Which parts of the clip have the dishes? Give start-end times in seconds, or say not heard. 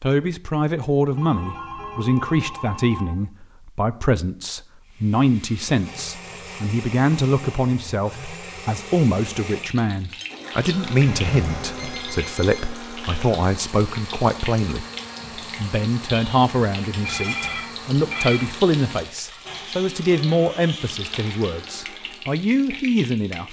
not heard.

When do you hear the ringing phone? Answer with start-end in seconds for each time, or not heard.
1.1-3.1, 11.1-12.8, 17.1-18.4.